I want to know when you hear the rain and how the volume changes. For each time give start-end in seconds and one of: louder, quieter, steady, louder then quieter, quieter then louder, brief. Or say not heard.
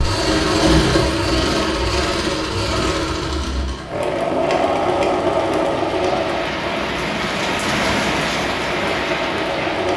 0.2-9.9 louder.